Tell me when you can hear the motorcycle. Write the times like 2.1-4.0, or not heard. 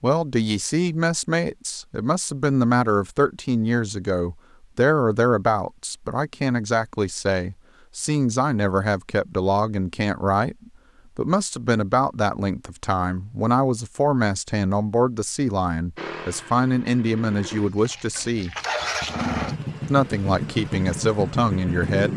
15.9-22.1.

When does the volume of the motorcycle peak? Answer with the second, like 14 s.
19 s.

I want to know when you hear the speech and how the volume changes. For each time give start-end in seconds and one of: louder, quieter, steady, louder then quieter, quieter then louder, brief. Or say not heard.
0.0-18.6 steady
19.9-22.1 brief.